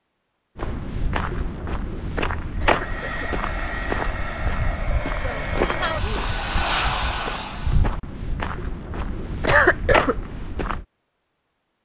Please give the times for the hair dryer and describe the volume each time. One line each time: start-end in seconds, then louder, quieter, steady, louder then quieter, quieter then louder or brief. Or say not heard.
2.6-8.0 louder.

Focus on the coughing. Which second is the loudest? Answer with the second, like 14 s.
10 s.